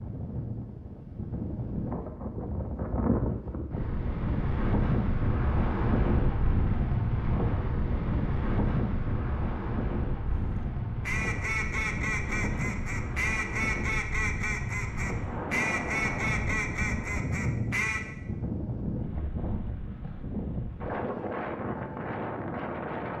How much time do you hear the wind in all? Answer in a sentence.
You can hear the wind for 23 seconds altogether.